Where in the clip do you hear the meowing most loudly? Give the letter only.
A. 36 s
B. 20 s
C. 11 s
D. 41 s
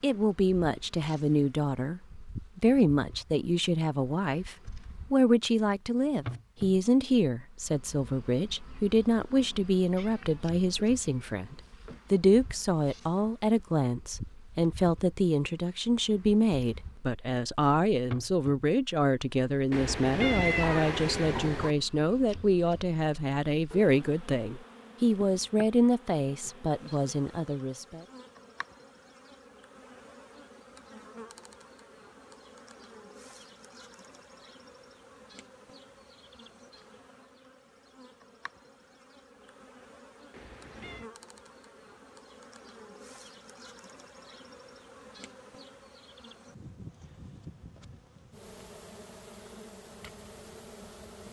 B.